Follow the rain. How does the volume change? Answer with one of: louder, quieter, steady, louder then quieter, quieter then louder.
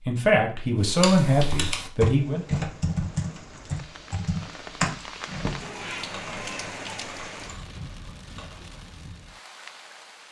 louder then quieter.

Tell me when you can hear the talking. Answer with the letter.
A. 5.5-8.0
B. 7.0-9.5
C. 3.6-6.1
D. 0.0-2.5
D.